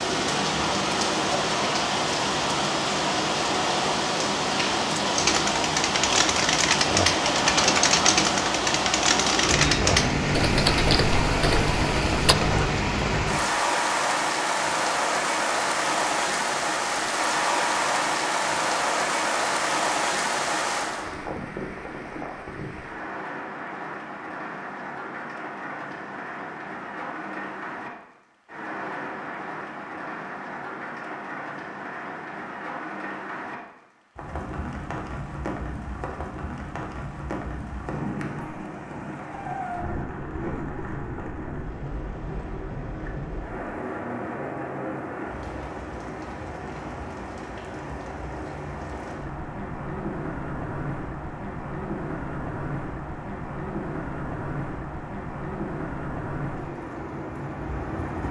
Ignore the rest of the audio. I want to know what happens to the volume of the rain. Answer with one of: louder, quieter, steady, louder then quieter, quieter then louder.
quieter.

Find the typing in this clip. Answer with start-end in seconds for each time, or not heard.
5.2-12.6.